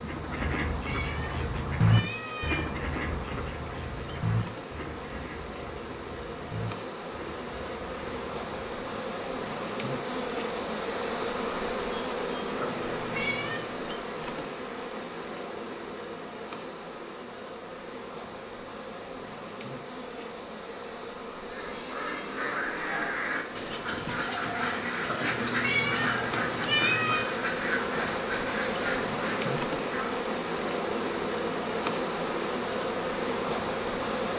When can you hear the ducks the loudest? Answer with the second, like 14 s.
2 s.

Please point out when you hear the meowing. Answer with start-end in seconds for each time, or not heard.
0.3-2.7, 12.6-13.8, 25.1-27.2.